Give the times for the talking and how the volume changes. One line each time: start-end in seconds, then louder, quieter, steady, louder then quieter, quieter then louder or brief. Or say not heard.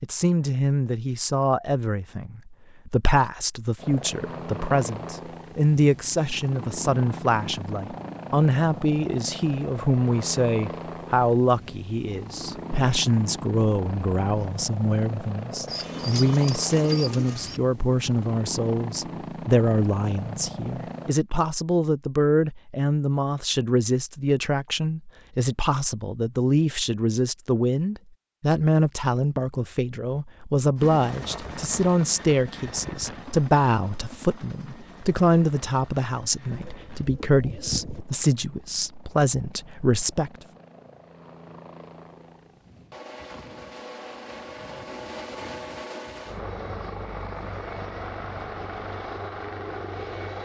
0.0-40.3 steady.